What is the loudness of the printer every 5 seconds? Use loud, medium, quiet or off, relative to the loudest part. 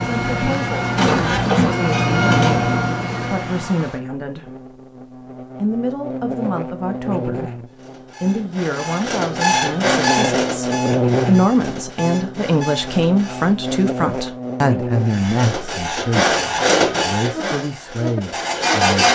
loud, loud, medium, loud.